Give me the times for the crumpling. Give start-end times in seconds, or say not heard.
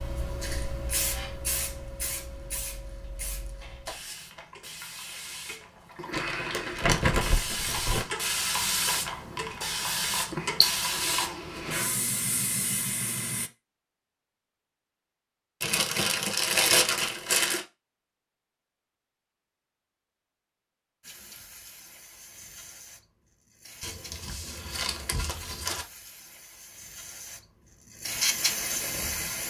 6.1-8.1, 15.6-17.6, 23.8-25.9.